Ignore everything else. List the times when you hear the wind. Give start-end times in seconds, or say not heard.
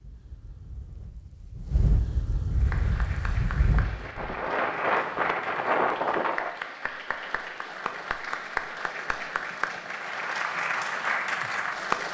0.0-6.5.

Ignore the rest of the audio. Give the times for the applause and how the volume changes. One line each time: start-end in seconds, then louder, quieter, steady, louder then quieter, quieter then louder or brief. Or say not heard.
2.5-12.1 louder.